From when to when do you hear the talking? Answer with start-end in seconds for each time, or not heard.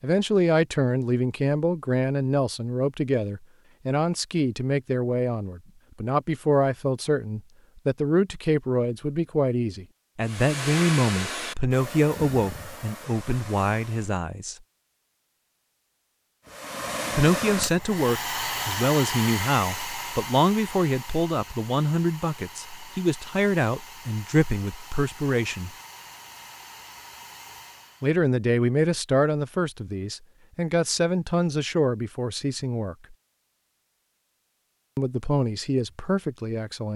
0.0-14.6, 17.1-25.7, 28.0-33.1, 35.0-36.9.